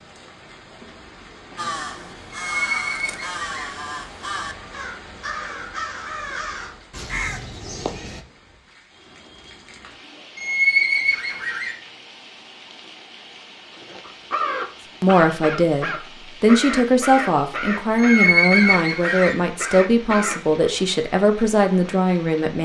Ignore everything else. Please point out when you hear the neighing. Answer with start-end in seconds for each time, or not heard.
2.5-3.7, 10.3-11.8, 17.9-19.4.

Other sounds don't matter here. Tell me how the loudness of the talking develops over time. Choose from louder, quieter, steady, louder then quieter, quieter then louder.
steady.